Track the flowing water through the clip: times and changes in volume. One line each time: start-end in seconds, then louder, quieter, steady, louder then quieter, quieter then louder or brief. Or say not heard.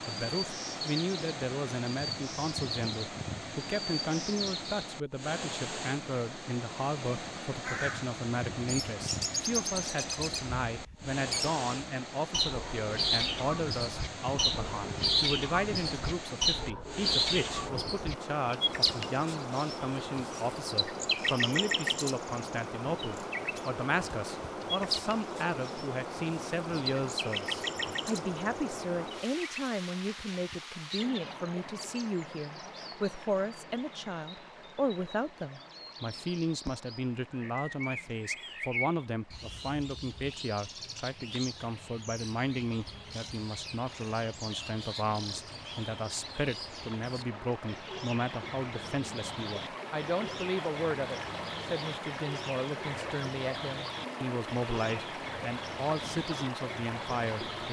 0.0-57.6 quieter then louder.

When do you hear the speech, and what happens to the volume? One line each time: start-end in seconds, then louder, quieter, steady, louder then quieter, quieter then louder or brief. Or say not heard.
0.1-57.6 steady.